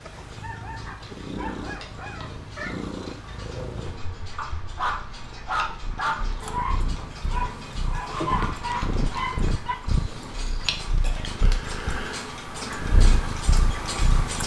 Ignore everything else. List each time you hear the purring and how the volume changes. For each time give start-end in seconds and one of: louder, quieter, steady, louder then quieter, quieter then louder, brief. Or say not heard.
0.0-14.4 quieter then louder.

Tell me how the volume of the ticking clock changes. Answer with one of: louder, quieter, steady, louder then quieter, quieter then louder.
louder.